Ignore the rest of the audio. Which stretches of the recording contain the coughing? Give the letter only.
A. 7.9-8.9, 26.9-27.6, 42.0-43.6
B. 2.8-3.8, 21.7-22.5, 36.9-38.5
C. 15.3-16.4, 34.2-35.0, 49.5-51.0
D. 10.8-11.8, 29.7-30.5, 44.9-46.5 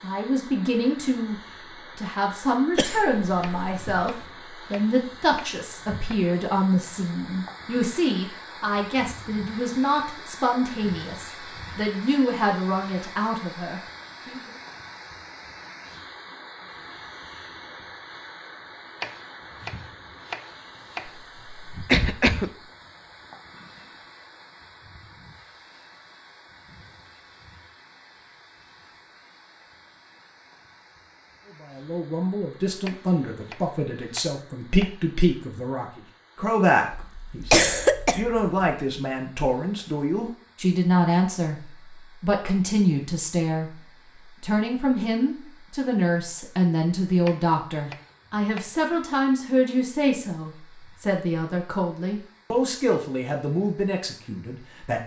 B.